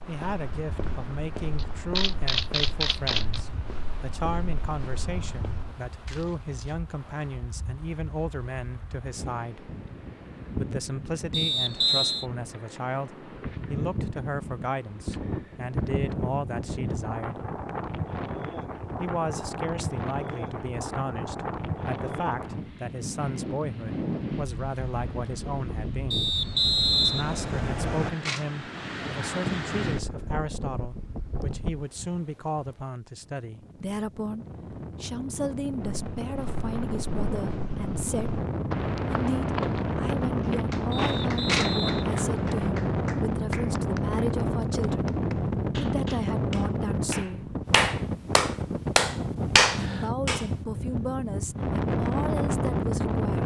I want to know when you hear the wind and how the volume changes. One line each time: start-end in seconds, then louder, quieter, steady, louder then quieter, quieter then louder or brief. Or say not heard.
0.0-53.4 louder.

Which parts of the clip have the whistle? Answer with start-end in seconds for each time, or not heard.
11.3-12.2, 26.1-28.1, 40.9-42.6.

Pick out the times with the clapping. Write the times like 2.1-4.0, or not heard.
40.4-50.5.